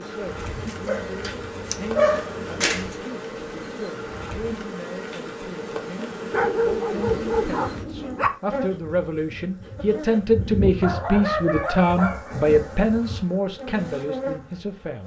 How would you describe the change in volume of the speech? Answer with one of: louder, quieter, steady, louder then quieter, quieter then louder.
louder.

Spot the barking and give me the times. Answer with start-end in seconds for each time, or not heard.
0.4-2.9, 6.3-8.3, 10.8-12.3.